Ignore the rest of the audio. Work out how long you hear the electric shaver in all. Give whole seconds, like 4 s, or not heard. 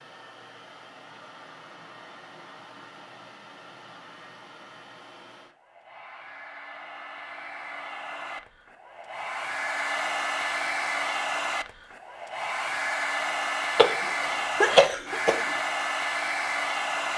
not heard.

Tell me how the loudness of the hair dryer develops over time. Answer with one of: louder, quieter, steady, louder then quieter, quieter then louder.
louder.